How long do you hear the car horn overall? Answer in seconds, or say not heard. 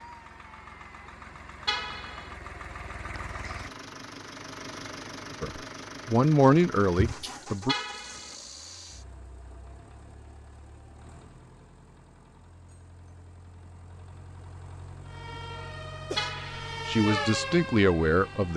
2 s.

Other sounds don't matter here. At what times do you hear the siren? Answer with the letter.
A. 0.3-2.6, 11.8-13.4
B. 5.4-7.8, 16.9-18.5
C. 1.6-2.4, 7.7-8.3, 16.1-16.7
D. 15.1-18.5
D.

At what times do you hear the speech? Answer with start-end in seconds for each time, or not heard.
5.4-7.8, 16.9-18.5.